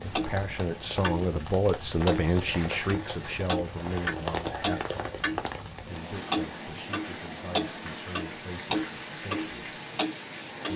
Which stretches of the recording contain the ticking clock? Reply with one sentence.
You can hear the ticking clock from 0.0 to 1.3 s and from 2.0 to 10.7 s.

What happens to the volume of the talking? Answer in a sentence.
The loudness of the talking goes down.